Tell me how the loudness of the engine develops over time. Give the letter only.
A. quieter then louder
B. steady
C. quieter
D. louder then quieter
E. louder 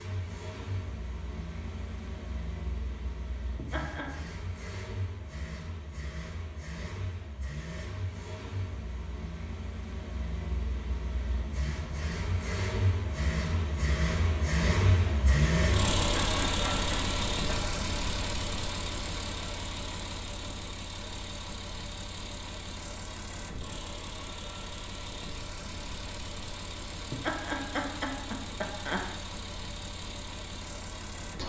D.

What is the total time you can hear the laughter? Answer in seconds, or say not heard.
4 s.